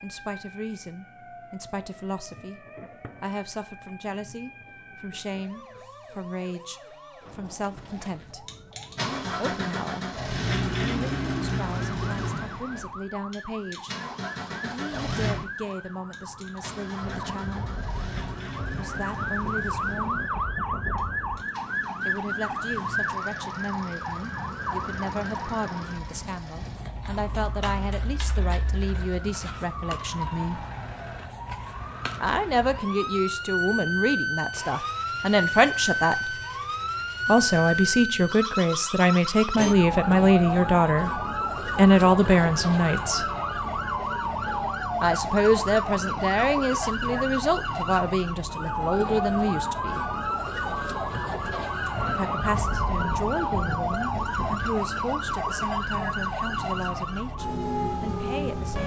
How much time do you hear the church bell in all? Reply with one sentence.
The church bell can't be heard in this clip.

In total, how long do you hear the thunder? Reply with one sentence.
The thunder can be heard for 7 seconds in total.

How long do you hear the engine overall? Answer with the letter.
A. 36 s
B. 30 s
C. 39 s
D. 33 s
B.